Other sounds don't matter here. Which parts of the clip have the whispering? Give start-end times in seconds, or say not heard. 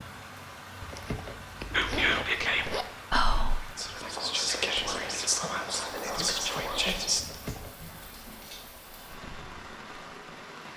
1.7-7.2.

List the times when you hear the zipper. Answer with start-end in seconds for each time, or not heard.
0.8-2.9, 7.2-7.8.